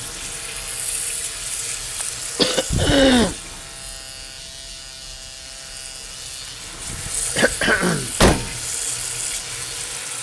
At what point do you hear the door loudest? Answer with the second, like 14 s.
8 s.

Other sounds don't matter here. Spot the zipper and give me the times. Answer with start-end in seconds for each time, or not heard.
not heard.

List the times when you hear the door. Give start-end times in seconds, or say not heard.
2.7-3.4, 6.8-8.6.